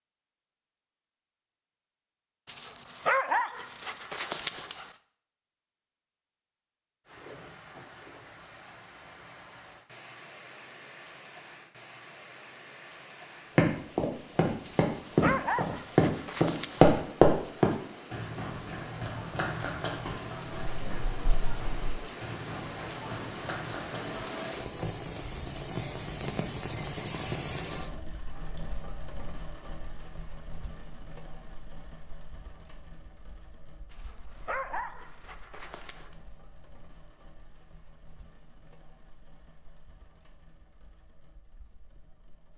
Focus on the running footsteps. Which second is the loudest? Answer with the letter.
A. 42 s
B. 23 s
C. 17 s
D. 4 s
C.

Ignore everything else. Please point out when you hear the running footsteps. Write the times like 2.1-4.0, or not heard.
13.6-24.2.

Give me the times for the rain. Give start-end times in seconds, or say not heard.
7.0-42.5.